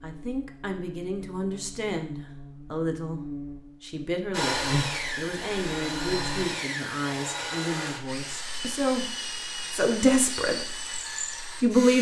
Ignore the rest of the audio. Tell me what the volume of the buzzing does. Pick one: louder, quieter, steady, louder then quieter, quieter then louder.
louder then quieter.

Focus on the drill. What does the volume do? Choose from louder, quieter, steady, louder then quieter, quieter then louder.
steady.